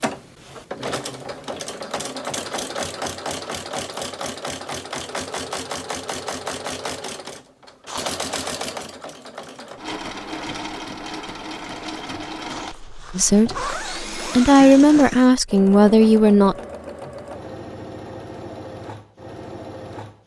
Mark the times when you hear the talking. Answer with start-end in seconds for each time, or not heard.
13.2-16.6.